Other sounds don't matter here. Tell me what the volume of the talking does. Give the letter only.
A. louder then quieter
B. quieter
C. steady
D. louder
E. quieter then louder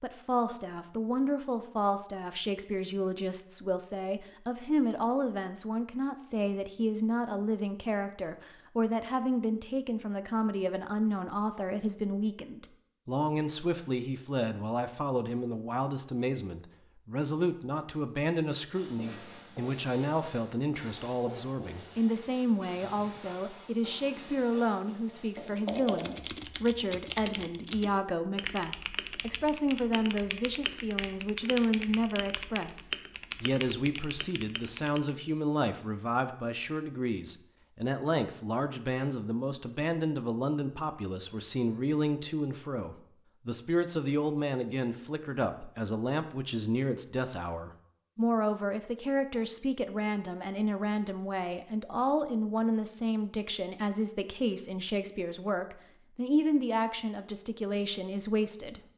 C.